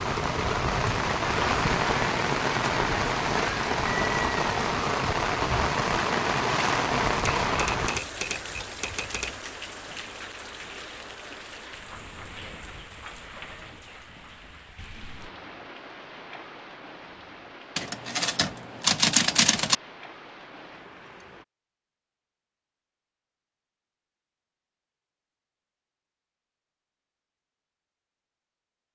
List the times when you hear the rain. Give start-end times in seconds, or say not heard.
0.0-21.4.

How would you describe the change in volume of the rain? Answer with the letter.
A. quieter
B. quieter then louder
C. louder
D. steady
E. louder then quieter
A.